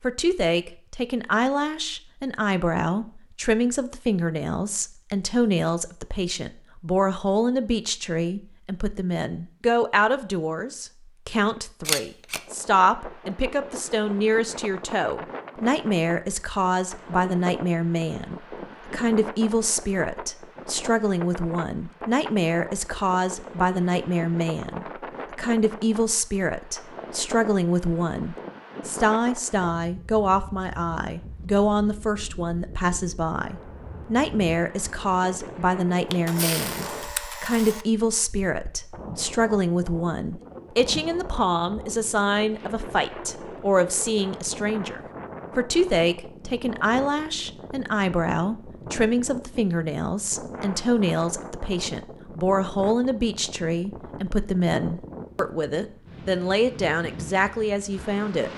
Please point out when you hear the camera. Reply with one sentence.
You can hear the camera from 11.8 to 12.4 s and from 36.1 to 37.9 s.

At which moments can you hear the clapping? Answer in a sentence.
The clapping can't be heard in this clip.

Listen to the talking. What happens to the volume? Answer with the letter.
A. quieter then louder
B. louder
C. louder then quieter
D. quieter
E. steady
E.